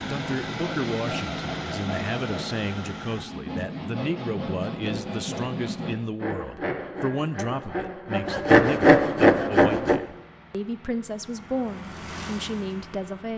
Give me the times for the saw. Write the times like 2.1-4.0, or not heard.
0.1-10.0.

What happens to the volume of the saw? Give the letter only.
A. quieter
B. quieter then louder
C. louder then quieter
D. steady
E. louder
E.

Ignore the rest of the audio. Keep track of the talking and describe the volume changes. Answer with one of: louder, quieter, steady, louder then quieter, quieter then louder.
steady.